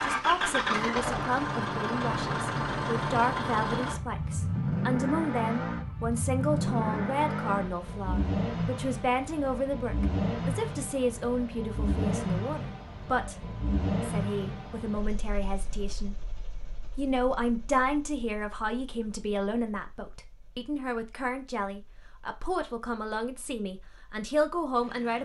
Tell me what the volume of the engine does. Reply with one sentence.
The loudness of the engine goes down.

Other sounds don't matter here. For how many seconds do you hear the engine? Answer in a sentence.
The engine can be heard for 25 seconds in total.